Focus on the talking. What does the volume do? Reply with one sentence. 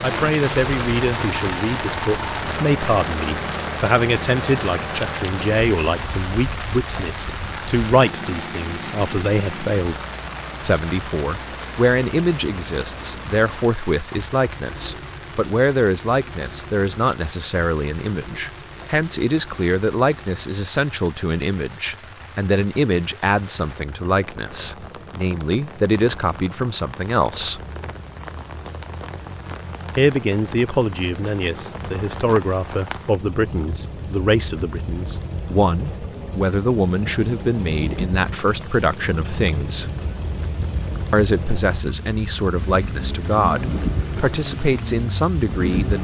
The loudness of the talking stays about the same.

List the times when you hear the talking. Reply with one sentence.
The talking can be heard from 0.0 to 10.0 s, from 10.6 to 27.6 s, from 29.9 to 39.9 s and from 41.1 to 45.9 s.